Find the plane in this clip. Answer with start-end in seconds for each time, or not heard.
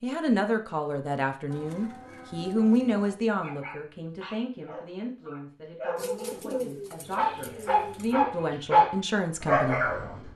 not heard.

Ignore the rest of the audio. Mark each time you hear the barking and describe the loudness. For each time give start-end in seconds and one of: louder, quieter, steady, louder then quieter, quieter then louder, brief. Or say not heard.
3.4-10.3 louder.